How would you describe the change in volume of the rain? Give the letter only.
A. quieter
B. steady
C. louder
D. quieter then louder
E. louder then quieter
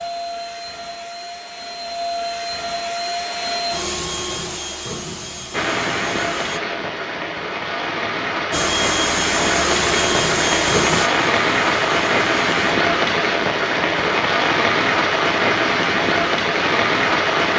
C.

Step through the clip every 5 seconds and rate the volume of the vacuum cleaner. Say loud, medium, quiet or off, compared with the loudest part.
loud, loud, loud, off.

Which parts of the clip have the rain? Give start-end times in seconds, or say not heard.
5.5-17.5.